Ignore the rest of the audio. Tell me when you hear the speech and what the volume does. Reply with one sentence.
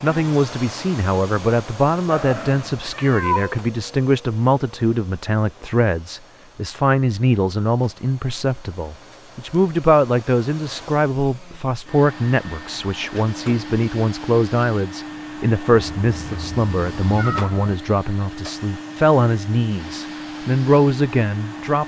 The speech can be heard from 0.0 to 21.8 s, at a steady volume.